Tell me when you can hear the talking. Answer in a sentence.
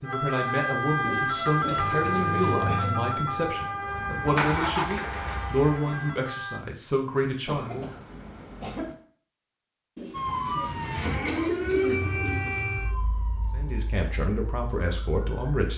The talking can be heard from 0.0 to 8.0 s and from 13.6 to 15.7 s.